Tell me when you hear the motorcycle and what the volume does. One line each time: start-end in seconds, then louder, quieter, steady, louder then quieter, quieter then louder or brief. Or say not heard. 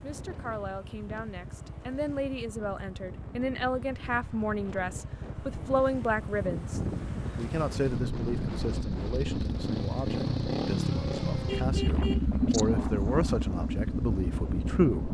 0.0-15.0 louder.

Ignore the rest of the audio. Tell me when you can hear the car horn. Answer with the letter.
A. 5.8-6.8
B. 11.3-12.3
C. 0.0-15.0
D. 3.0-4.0
B.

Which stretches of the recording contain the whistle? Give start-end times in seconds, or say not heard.
not heard.